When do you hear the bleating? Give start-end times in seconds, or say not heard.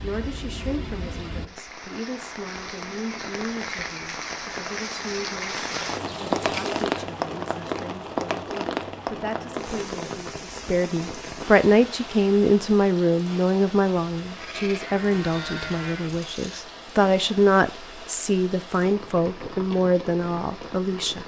5.5-6.9, 14.2-16.6.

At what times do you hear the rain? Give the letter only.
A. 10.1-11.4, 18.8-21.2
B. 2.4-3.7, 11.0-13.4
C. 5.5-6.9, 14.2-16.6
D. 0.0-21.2
D.